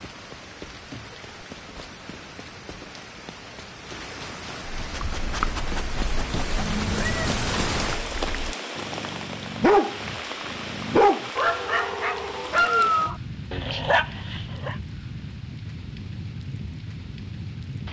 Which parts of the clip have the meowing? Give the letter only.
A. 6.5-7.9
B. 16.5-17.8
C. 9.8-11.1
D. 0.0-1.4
A.